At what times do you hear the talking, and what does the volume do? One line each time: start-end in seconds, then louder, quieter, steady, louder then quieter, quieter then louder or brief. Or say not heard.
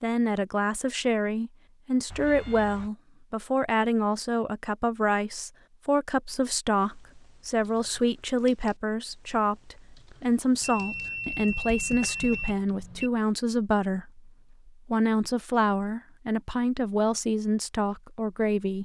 0.0-18.8 steady.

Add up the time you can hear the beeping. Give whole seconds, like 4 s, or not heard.
3 s.